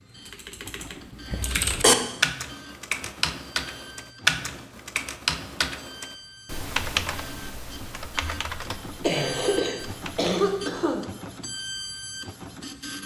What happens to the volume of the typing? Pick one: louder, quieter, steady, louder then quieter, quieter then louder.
quieter.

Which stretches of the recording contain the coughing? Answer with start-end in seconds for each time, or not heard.
1.3-1.9, 9.0-11.1.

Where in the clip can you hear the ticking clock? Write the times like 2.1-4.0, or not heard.
not heard.